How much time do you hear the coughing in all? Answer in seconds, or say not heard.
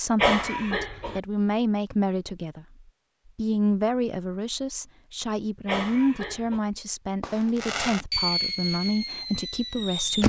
2 s.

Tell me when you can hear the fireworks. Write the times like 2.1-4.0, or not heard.
7.2-10.2.